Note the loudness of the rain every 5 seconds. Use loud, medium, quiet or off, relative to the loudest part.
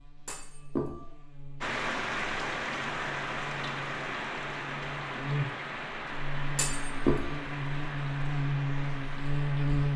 loud, medium.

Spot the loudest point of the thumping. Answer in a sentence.
The loudest moment of the thumping is at 7 seconds.